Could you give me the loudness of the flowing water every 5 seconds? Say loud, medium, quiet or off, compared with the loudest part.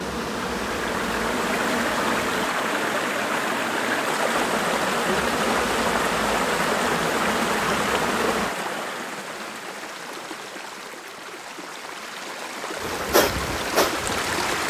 loud, loud, medium.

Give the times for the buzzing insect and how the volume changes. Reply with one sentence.
You can hear the buzzing insect briefly from 0.0 to 2.5 s; from 4.3 to 8.6 s, at a steady volume; and briefly from 12.8 to 14.6 s.